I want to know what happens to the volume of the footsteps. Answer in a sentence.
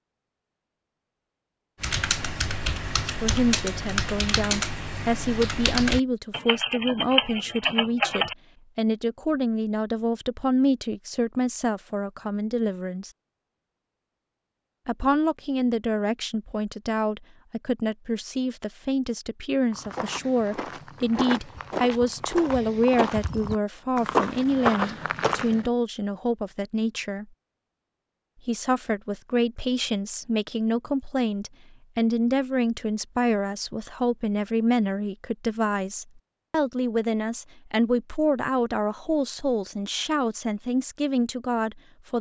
The volume of the footsteps goes up.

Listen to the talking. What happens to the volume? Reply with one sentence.
The volume of the talking stays about the same.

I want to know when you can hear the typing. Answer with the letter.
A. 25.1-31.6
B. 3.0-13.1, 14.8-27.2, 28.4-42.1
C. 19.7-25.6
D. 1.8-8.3
D.